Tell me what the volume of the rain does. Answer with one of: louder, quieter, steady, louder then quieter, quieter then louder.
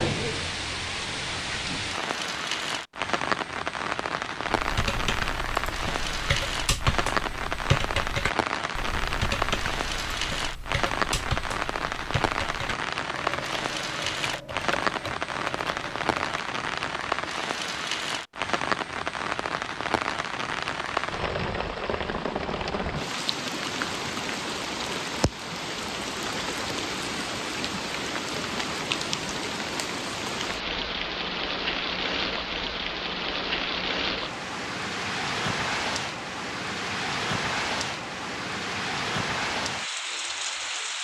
steady.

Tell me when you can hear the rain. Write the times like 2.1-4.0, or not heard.
0.0-41.0.